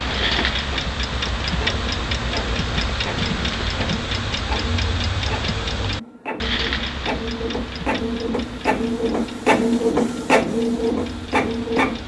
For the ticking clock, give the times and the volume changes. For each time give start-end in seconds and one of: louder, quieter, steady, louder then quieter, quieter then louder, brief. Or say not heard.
0.0-12.0 quieter.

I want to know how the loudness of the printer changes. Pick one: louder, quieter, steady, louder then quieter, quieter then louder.
louder.